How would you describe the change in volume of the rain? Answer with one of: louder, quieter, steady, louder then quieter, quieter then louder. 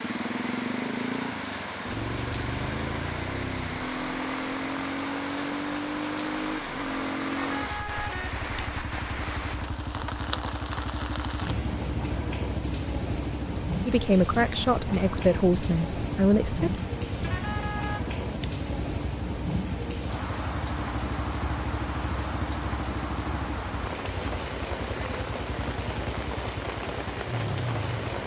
steady.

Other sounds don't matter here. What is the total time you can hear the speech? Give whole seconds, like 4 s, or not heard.
3 s.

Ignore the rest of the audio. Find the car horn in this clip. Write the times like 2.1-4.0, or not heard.
7.3-8.4, 17.2-18.0.